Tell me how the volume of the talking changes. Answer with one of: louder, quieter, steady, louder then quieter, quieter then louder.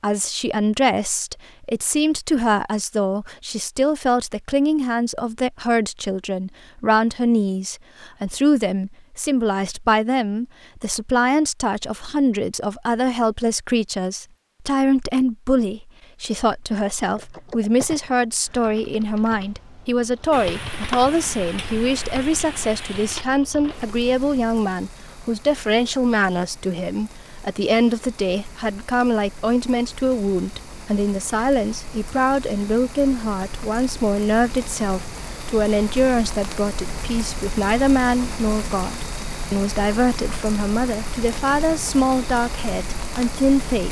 steady.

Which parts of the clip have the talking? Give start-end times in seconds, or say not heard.
0.0-43.8.